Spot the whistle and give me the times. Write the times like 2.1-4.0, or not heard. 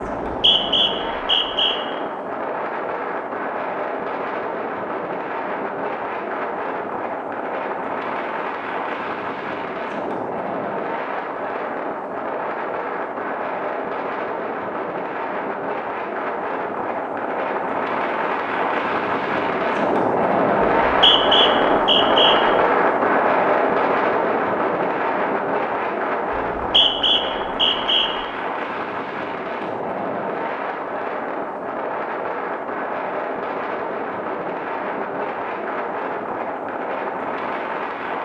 0.0-1.8, 20.8-22.4, 26.4-28.1.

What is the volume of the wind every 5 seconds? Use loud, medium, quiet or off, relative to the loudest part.
medium, medium, medium, medium, loud, medium, medium, medium.